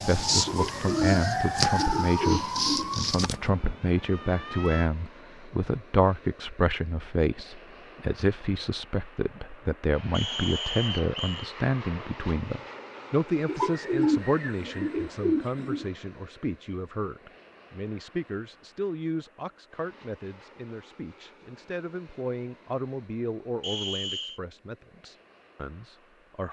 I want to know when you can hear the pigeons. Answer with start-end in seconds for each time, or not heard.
0.5-3.0, 13.4-15.8.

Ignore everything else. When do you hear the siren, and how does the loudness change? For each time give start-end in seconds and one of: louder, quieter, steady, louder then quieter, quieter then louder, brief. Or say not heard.
0.0-4.9 louder then quieter.